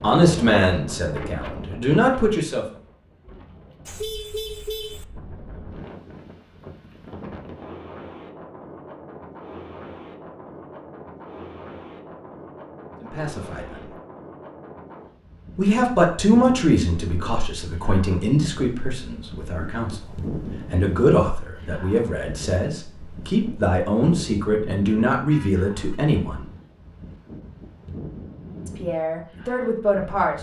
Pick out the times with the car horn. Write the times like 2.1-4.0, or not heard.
3.9-5.0, 25.3-26.0.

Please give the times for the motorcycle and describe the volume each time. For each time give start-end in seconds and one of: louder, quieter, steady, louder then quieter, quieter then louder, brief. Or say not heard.
not heard.